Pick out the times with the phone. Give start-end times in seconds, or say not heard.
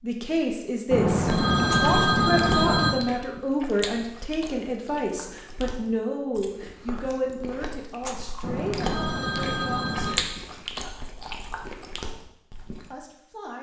0.9-2.9, 8.4-10.2.